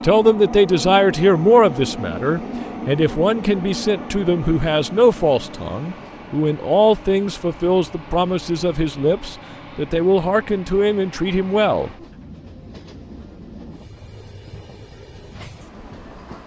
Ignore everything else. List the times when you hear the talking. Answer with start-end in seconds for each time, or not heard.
0.0-11.9.